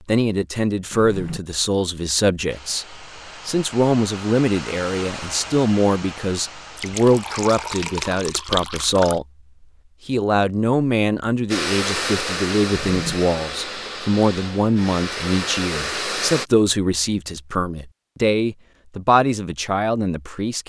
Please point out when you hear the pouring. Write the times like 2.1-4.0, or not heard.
6.8-9.2.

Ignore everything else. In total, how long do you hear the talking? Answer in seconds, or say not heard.
20 s.